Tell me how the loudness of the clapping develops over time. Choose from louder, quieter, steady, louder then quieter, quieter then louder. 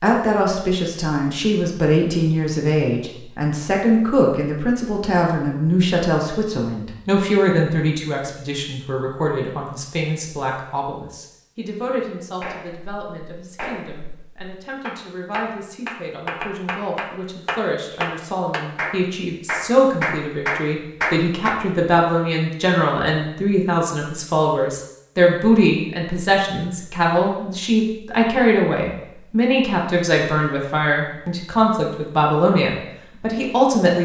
louder.